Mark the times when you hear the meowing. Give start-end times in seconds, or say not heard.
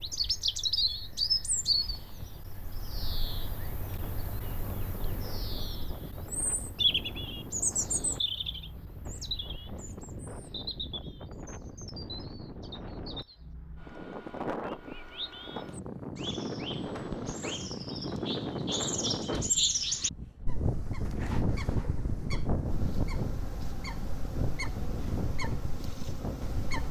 not heard.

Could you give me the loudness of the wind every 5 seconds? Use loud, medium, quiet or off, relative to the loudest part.
quiet, medium, medium, loud, loud, loud.